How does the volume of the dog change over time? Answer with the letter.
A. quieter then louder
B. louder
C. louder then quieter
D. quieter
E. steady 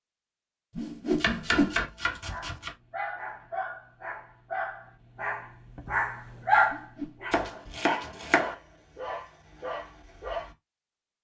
C.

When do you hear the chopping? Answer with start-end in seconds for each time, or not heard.
1.2-2.8, 7.3-8.6.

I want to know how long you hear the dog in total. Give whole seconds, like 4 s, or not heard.
8 s.